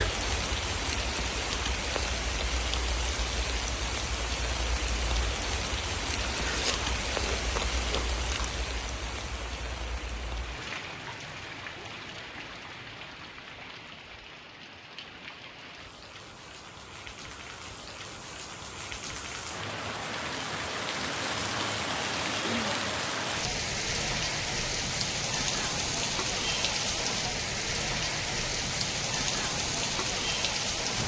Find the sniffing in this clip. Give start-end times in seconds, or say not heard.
not heard.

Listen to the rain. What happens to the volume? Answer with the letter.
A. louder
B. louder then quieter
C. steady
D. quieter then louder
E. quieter
D.